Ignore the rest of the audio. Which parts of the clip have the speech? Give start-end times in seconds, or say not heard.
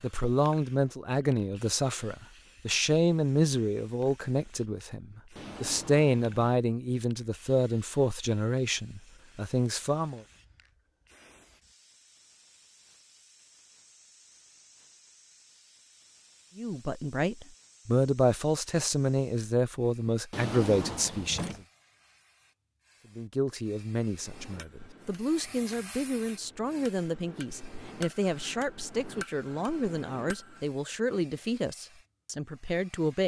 0.0-10.2, 16.6-21.5, 23.1-33.2.